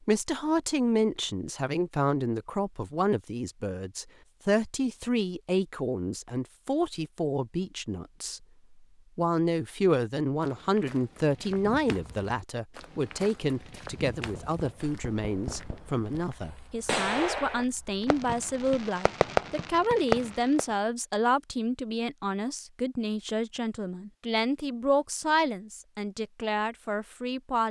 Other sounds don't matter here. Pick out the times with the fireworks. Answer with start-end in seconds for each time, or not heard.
14.2-20.6.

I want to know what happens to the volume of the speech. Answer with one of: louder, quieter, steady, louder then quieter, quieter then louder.
steady.